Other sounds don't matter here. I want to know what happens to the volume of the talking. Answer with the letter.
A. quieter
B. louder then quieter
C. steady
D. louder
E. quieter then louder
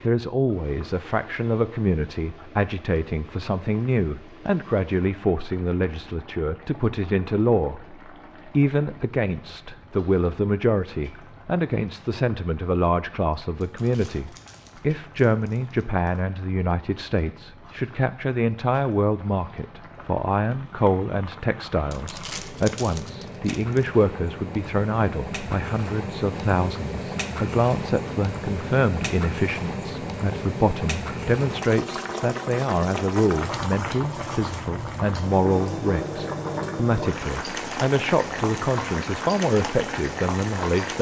C.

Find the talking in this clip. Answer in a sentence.
The talking can be heard from 0.0 to 40.9 s.